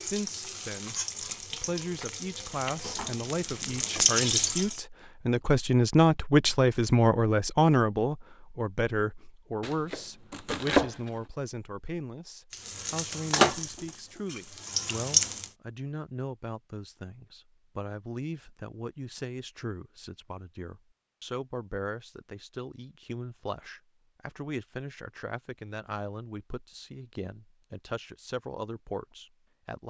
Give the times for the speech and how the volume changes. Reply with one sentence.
You can hear the speech from 0.0 to 29.8 s, getting quieter.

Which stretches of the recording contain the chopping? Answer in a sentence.
You can hear the chopping from 9.6 to 11.1 s.